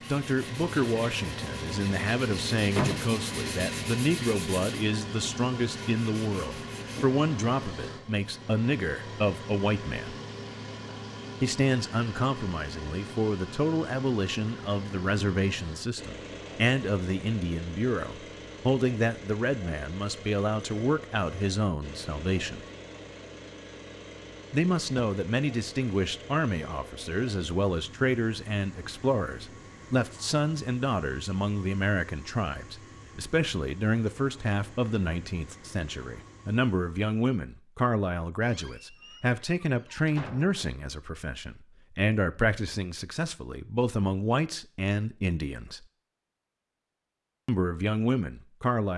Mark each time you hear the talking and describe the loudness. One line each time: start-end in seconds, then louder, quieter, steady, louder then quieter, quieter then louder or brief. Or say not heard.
0.1-10.2 steady
11.4-22.6 steady
24.5-45.9 steady
47.5-48.9 brief.